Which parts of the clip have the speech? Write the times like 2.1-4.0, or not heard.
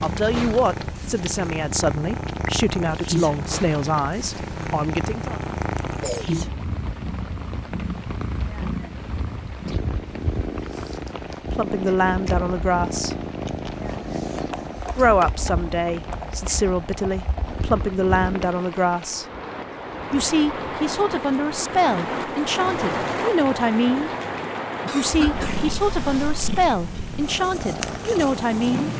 0.0-5.4, 11.5-13.2, 14.9-19.2, 20.1-24.1, 24.9-28.9.